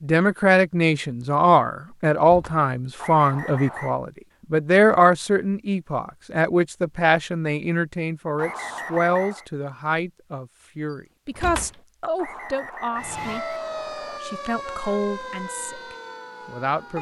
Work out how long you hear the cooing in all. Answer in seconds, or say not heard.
not heard.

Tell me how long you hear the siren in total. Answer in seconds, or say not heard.
4 s.